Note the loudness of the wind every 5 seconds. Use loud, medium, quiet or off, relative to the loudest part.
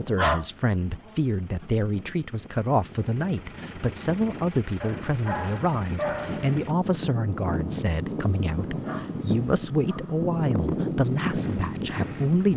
quiet, loud, loud.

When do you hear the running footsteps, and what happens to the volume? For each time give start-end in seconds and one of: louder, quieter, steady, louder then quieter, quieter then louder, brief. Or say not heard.
not heard.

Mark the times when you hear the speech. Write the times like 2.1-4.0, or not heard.
0.0-12.5.